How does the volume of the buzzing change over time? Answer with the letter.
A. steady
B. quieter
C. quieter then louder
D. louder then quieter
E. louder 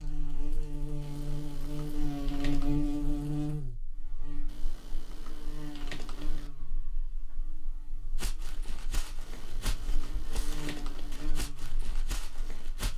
C.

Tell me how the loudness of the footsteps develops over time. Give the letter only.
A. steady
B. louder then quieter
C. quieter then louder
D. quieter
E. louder
A.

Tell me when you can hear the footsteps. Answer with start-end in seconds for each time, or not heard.
8.2-12.9.